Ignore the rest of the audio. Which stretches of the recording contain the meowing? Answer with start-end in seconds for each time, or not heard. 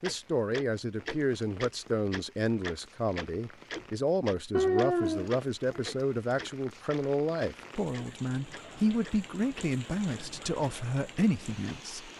4.5-5.9.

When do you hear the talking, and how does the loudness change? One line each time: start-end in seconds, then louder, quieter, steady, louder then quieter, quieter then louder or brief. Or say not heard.
0.0-12.1 steady.